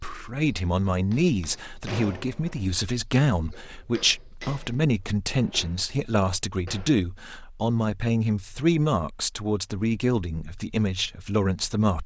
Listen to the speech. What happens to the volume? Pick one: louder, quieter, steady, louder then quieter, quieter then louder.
steady.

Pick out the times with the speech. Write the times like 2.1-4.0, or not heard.
0.0-12.0.